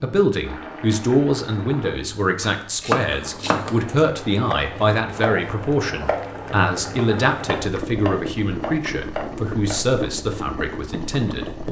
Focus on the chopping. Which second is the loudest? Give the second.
3 s.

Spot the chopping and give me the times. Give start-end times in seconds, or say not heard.
2.4-9.8.